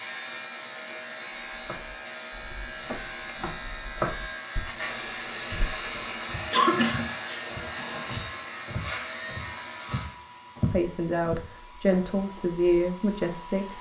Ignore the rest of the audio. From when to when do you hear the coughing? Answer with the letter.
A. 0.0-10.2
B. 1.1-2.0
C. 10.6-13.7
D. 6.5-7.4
D.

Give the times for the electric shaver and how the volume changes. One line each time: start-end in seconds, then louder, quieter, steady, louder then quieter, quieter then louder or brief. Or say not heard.
0.0-10.2 steady.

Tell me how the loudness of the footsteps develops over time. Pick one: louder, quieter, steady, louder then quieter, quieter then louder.
quieter then louder.